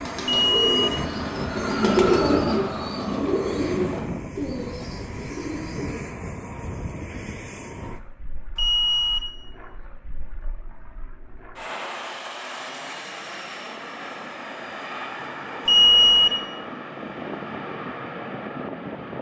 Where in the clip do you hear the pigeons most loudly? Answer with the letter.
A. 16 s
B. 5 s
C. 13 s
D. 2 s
D.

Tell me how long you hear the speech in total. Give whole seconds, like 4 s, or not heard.
not heard.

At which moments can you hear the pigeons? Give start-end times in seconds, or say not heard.
0.0-6.2.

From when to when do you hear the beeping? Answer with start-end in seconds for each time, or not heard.
0.2-0.9, 8.6-9.2, 15.7-16.3.